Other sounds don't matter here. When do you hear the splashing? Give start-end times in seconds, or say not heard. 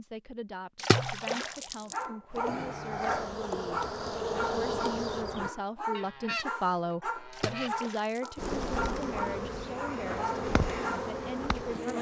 0.8-2.0, 7.3-8.5.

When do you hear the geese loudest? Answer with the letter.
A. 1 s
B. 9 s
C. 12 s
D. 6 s
D.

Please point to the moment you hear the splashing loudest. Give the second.
1 s.